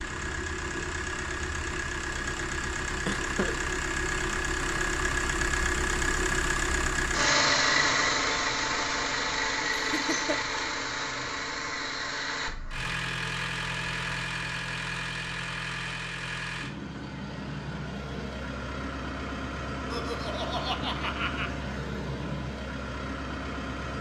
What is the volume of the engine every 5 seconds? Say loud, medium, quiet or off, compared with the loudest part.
medium, loud, medium, medium, medium.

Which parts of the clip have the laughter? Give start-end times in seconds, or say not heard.
3.0-3.5, 9.8-10.6, 19.9-21.5.